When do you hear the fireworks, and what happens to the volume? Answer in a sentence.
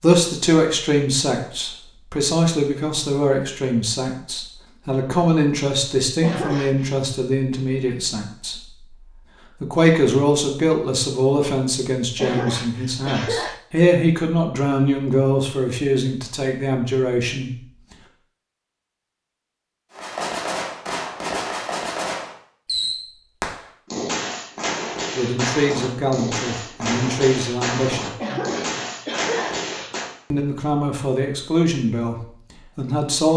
The fireworks can be heard from 19.9 to 30.1 s, at a steady volume.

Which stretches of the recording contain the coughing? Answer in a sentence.
You can hear the coughing from 6.2 to 7.0 s, from 12.2 to 13.6 s and from 28.2 to 29.6 s.